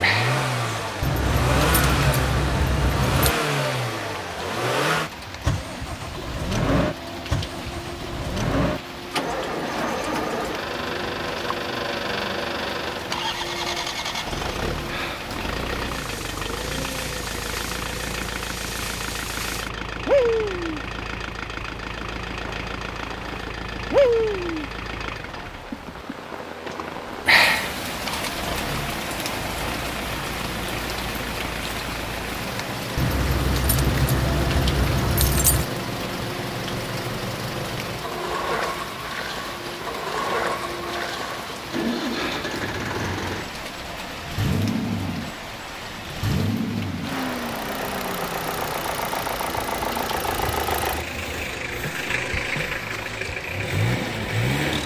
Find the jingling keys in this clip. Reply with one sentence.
The jingling keys can be heard from 1.0 to 3.4 s and from 33.0 to 35.6 s.